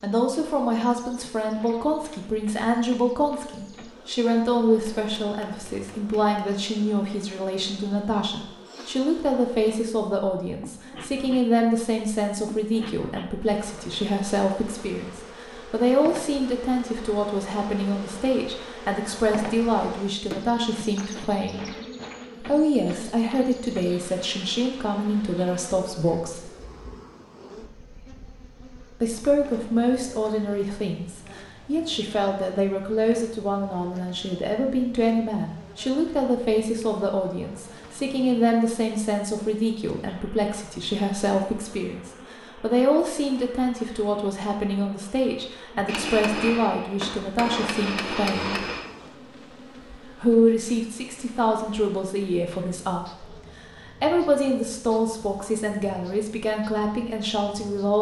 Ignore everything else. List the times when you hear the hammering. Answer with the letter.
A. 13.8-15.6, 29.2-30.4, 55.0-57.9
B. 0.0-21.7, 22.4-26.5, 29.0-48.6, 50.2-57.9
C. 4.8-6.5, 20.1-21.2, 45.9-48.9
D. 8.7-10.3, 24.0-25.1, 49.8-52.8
C.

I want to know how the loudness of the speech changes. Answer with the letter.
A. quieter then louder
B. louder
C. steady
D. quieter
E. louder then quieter
C.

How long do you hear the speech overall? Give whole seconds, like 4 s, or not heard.
53 s.